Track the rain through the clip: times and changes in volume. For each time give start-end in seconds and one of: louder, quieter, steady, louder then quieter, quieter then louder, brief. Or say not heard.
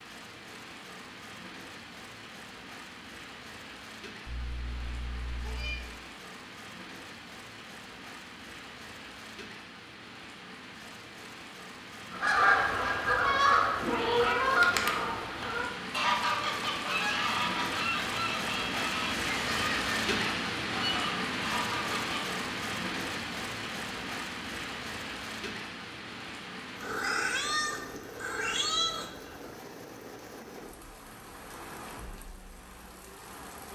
0.0-33.7 louder then quieter.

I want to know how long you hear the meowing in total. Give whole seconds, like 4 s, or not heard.
5 s.